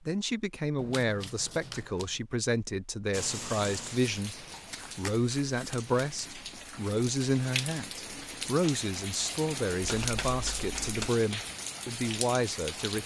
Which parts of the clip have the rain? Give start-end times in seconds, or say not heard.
3.1-13.0.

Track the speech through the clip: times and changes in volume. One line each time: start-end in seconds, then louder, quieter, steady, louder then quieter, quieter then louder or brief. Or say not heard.
0.1-13.0 steady.